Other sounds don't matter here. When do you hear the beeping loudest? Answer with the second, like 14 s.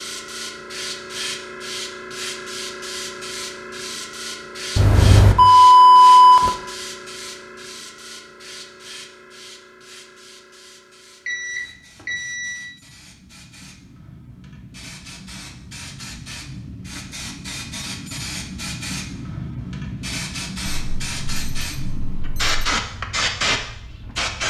6 s.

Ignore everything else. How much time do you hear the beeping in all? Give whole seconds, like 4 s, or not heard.
5 s.